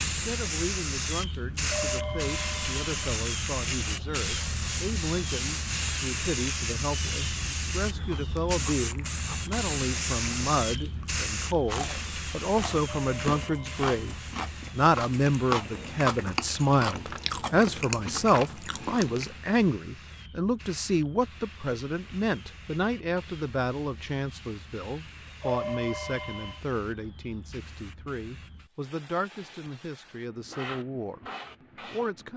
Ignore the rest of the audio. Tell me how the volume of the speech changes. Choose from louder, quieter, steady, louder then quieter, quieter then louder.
louder then quieter.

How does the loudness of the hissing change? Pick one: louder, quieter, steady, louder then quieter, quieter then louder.
quieter.